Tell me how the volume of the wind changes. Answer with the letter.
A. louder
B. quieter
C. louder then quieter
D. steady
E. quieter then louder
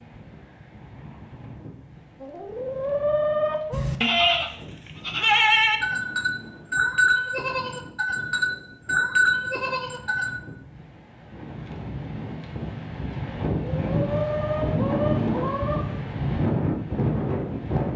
A.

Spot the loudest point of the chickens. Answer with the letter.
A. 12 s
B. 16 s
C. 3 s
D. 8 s
C.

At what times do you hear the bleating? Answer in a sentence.
The bleating can be heard from 3.7 to 10.3 s.